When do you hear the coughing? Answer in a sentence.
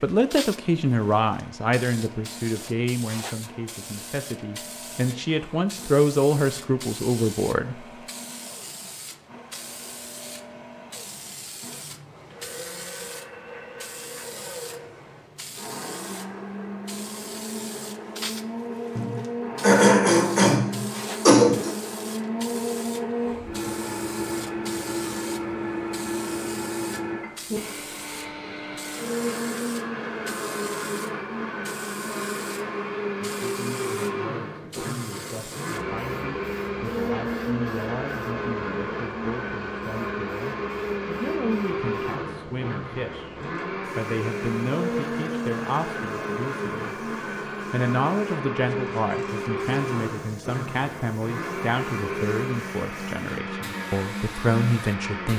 You can hear the coughing from 18.9 to 21.7 s.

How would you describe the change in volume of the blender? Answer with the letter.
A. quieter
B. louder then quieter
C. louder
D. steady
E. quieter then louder
C.